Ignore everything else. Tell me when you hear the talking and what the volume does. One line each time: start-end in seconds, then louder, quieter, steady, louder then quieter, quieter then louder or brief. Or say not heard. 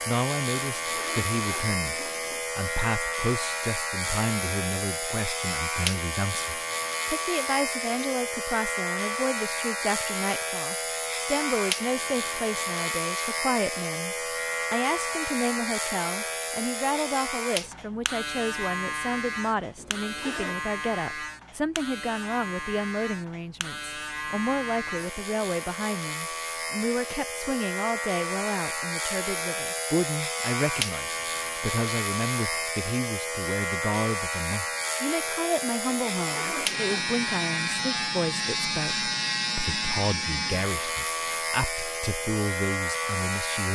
0.1-43.7 steady.